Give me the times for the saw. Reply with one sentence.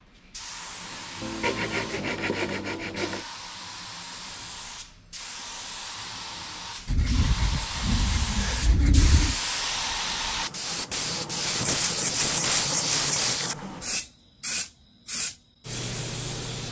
You can hear the saw from 1.2 to 3.2 s, from 6.8 to 9.3 s and from 11.5 to 13.6 s.